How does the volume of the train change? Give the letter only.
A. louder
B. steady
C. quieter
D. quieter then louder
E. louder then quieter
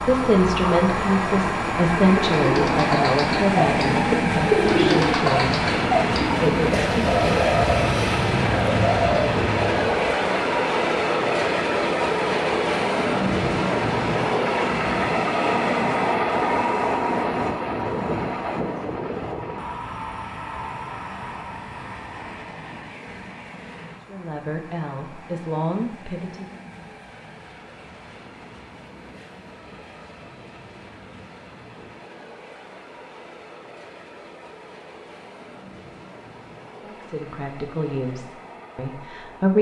C.